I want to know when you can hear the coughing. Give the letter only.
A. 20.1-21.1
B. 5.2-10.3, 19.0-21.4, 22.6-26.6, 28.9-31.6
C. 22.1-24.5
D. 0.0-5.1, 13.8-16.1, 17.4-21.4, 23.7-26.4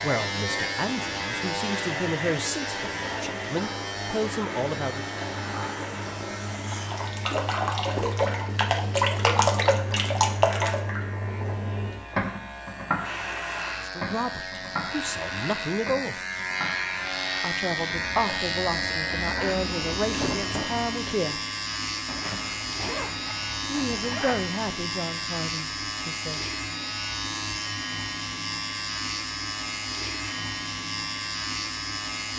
A.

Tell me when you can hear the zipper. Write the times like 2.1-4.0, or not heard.
22.1-24.5.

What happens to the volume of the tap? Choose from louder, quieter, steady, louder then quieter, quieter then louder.
louder then quieter.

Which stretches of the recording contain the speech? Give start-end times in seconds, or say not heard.
0.0-5.1, 13.8-16.1, 17.4-21.4, 23.7-26.4.